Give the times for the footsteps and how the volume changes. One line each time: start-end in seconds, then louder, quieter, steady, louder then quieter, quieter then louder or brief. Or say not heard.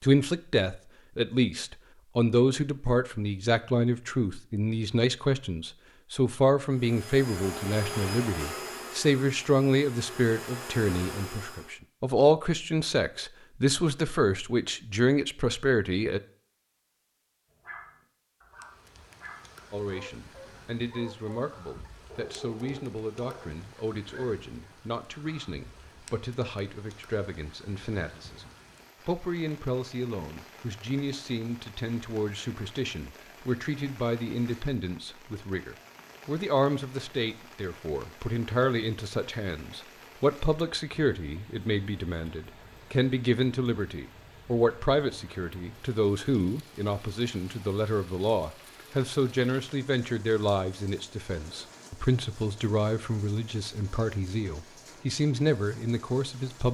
not heard.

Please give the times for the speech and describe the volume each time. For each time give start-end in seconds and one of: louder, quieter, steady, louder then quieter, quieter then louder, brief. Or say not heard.
0.0-16.2 steady
19.7-56.7 louder.